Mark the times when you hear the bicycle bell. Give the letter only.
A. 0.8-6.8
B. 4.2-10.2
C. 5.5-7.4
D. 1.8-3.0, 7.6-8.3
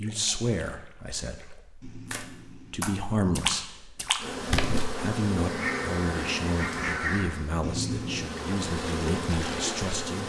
D.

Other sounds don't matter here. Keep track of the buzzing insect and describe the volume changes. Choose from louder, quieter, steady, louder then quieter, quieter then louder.
quieter then louder.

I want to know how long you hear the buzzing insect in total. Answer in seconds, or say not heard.
6 s.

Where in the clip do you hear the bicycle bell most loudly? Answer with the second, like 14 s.
8 s.